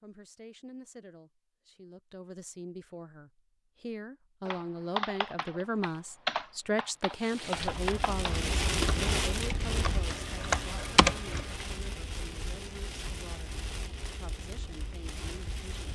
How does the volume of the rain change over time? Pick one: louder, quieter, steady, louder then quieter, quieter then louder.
quieter.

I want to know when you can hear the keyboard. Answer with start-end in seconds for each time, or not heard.
4.5-11.7.